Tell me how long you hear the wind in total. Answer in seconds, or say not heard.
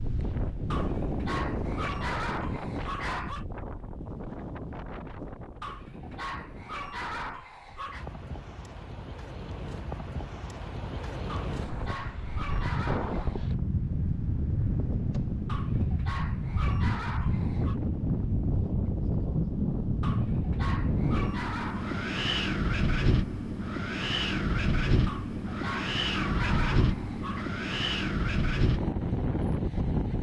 30 s.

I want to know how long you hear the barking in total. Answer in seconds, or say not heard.
14 s.